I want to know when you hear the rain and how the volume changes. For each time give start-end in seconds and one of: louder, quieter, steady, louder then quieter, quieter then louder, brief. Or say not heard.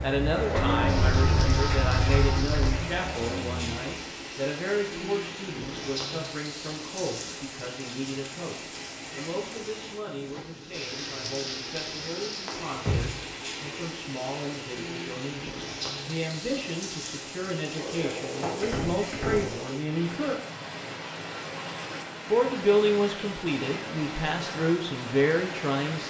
0.0-26.0 steady.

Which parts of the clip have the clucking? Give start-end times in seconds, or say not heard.
0.6-2.8.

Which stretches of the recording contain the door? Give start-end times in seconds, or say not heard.
0.5-2.5, 12.7-13.2, 17.8-19.8.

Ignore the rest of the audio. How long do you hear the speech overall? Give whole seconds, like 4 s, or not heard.
24 s.